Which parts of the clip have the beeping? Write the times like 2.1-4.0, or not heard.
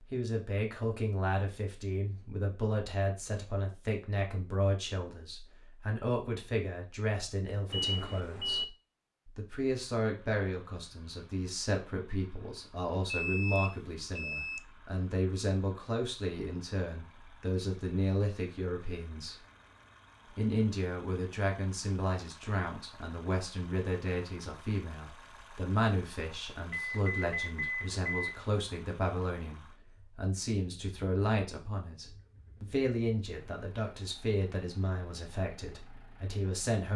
7.7-8.7, 13.1-14.6, 26.7-28.4.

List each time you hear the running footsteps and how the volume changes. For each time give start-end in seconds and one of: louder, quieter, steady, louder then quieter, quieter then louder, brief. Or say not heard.
not heard.